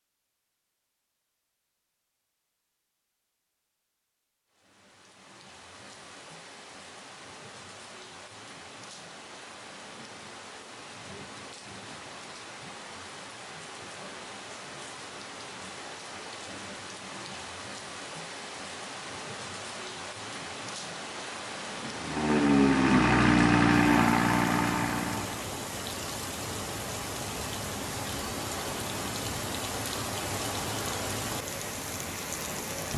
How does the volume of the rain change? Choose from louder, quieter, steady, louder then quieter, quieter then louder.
louder.